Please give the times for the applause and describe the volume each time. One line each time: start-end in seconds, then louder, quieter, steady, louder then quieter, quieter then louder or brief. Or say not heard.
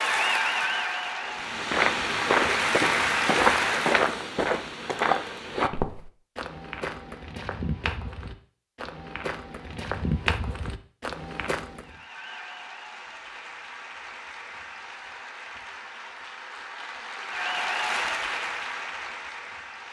0.0-4.1 quieter then louder
11.8-19.8 louder.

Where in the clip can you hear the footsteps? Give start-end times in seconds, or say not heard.
1.2-11.8.